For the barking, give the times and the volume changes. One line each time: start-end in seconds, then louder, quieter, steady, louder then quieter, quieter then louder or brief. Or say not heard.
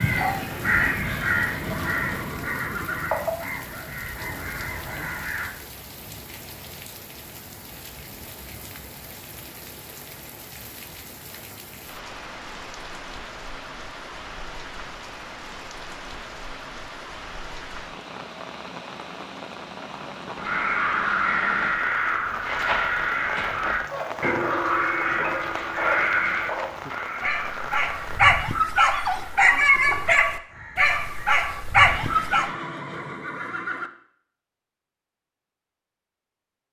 23.9-32.5 louder.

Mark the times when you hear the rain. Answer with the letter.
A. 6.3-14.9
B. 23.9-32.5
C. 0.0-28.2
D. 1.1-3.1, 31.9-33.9
C.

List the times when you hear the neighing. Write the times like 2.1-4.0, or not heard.
1.1-3.1, 31.9-33.9.